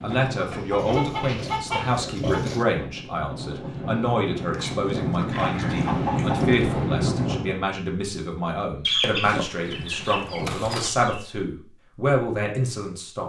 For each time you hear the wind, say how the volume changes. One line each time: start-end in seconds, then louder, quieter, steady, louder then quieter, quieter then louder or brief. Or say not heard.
0.0-7.7 louder.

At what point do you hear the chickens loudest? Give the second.
9 s.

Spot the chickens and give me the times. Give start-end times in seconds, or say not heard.
0.1-2.5, 5.4-7.0, 8.8-11.2.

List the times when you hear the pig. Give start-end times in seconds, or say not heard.
0.8-2.6, 4.5-6.5, 9.2-10.9.